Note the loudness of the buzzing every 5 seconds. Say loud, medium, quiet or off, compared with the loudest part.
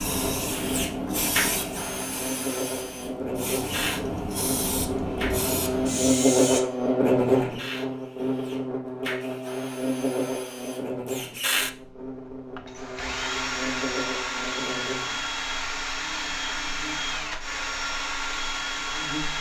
medium, loud, medium, quiet.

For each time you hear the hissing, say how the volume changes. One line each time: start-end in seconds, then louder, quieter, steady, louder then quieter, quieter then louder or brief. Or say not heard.
0.0-6.6 quieter then louder.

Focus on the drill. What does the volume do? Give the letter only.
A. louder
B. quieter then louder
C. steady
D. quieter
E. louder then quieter
B.